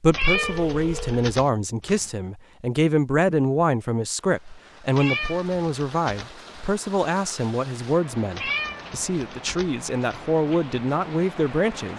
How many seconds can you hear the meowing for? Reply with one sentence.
The meowing can be heard for 5 seconds in total.